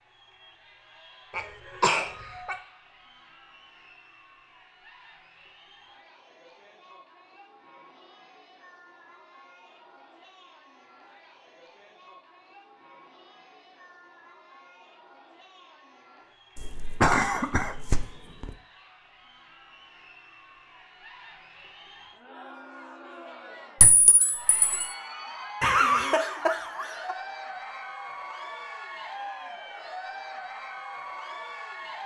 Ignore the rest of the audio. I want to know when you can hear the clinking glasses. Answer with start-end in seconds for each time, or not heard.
23.8-24.9.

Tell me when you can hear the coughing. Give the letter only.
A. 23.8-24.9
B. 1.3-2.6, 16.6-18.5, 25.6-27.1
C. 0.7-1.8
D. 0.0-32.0
B.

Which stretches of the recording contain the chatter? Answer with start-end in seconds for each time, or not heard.
0.0-32.0.